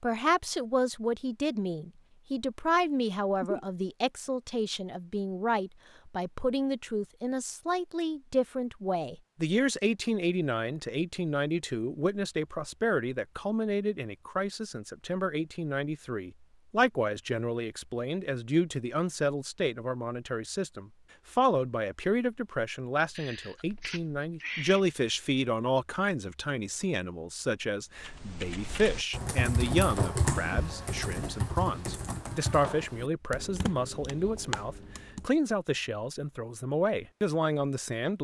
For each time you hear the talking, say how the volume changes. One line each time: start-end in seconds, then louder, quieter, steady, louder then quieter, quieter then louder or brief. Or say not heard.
0.0-38.1 steady.